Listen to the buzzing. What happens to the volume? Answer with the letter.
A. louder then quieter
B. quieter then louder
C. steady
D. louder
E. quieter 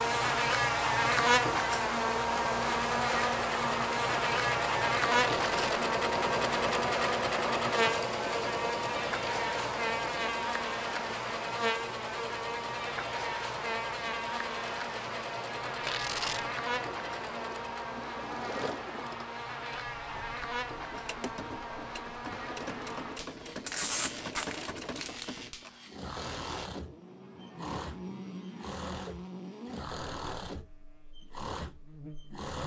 E.